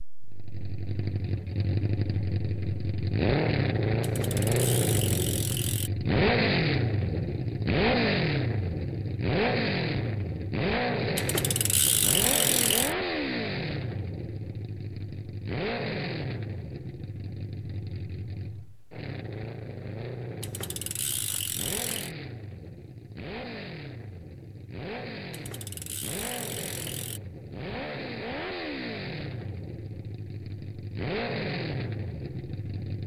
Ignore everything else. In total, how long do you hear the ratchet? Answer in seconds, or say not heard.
7 s.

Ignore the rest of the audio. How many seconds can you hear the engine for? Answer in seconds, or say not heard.
33 s.